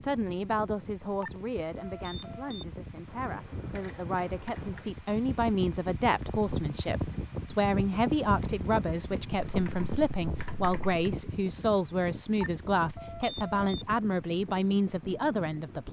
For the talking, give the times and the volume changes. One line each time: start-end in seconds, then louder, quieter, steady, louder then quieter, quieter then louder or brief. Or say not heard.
0.0-15.8 louder.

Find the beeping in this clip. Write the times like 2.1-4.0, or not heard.
1.2-2.6, 12.4-13.7.